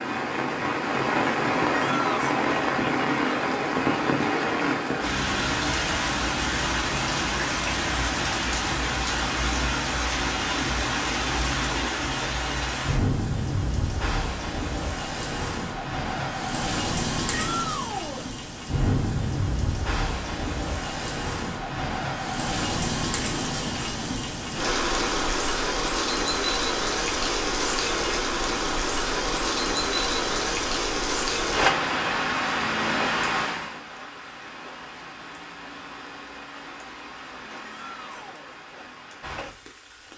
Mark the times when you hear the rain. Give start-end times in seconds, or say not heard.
0.0-40.1.